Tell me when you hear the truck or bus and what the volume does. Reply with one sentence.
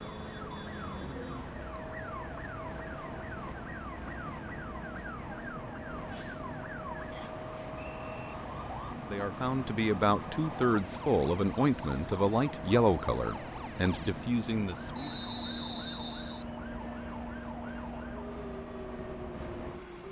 You can hear the truck or bus from 0.0 to 20.0 s, at a steady volume.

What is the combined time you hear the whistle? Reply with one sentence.
You can hear the whistle for 3 seconds altogether.